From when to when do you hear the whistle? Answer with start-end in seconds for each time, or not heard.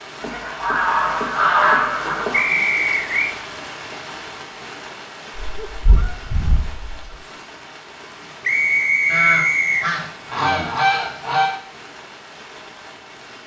2.3-3.4, 8.4-9.8.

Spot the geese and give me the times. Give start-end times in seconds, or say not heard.
0.2-2.5, 5.4-7.2, 9.1-11.6.